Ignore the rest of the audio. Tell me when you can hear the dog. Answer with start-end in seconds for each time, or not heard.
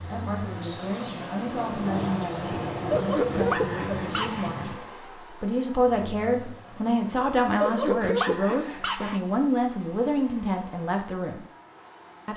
2.9-4.5, 7.6-9.2.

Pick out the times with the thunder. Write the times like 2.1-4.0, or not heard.
0.6-4.8.